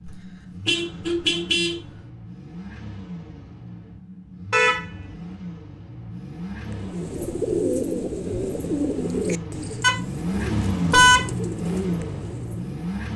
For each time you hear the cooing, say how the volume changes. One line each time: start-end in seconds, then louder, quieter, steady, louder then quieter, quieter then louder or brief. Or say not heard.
6.7-12.8 quieter.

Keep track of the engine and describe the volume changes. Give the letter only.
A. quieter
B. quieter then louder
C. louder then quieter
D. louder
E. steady
D.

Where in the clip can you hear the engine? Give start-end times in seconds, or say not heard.
0.0-13.1.